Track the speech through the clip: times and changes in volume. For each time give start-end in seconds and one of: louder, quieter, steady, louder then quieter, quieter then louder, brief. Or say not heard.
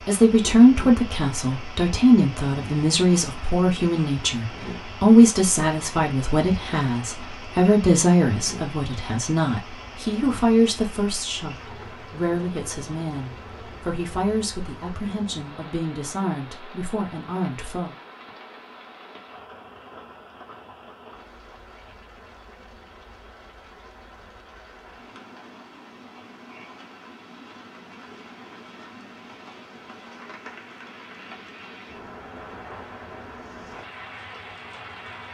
0.1-17.9 quieter.